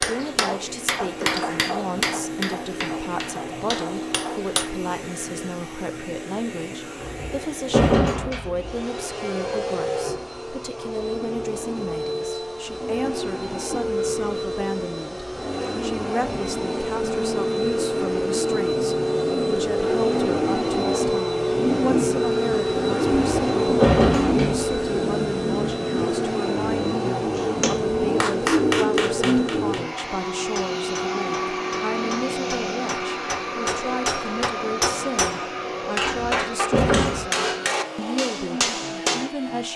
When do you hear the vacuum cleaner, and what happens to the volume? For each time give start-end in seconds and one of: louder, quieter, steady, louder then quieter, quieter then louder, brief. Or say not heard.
0.0-39.7 louder then quieter.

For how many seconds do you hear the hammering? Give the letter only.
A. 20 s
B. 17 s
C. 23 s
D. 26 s
B.